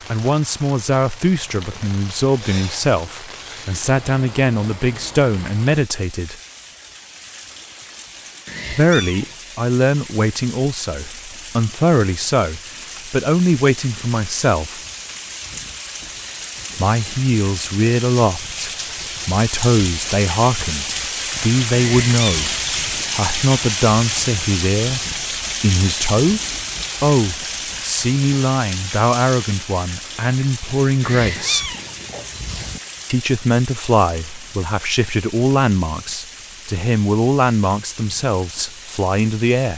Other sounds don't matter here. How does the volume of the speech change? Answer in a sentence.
The loudness of the speech stays about the same.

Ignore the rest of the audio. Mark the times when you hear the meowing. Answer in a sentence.
You can hear the meowing from 8.4 to 9.3 s, from 21.8 to 22.6 s and from 31.0 to 32.8 s.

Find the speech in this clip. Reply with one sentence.
You can hear the speech from 0.1 to 6.3 s, from 8.7 to 14.8 s, from 16.8 to 26.4 s, from 27.0 to 31.8 s and from 33.1 to 39.7 s.